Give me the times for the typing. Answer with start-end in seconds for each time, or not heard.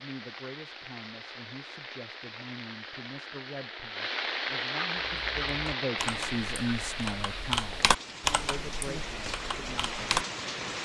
5.0-10.2.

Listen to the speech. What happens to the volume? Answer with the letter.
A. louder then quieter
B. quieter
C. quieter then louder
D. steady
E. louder
A.